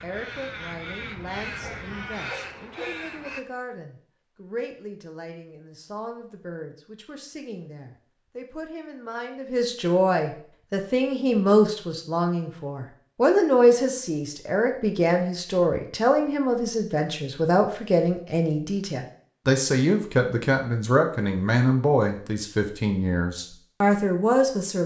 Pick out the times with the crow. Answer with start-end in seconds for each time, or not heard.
0.0-3.4.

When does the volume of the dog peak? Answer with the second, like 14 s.
3 s.